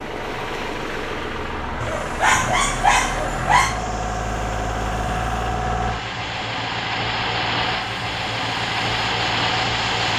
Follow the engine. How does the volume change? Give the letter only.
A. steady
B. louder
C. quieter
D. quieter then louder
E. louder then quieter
B.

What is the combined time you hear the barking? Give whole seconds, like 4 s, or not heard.
2 s.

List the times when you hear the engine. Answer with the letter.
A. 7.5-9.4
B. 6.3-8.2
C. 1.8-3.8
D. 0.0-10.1
D.